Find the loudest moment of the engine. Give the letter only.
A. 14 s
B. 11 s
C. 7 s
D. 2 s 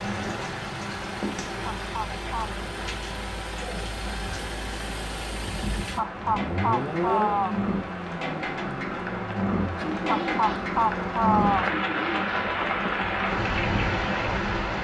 C.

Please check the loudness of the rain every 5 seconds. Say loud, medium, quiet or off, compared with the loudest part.
medium, medium, loud.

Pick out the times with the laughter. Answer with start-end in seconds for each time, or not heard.
1.6-2.5, 6.0-7.5, 10.1-11.7.